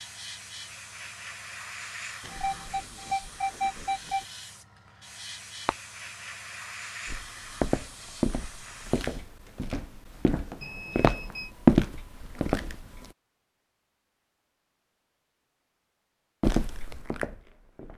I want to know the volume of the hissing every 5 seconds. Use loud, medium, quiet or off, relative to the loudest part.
loud, loud, off, off.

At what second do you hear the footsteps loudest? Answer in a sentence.
The loudest moment of the footsteps is at 12 seconds.